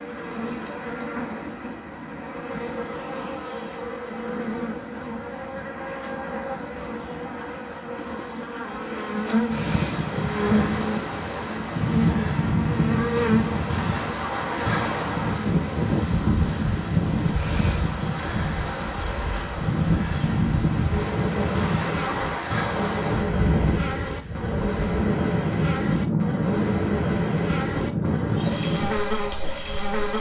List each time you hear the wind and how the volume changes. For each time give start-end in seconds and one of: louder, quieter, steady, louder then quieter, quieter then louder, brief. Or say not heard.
9.5-29.9 steady.